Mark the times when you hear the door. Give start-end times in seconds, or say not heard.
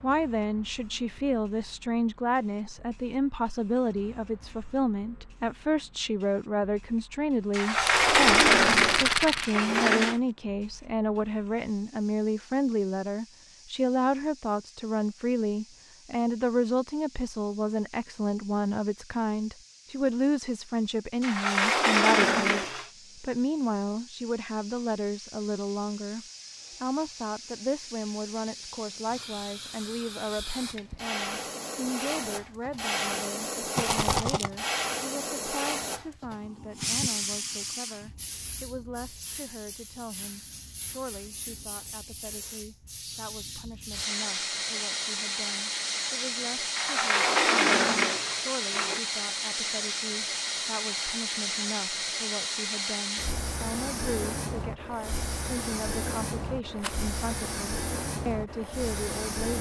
7.5-10.2, 21.2-22.9, 46.8-49.0.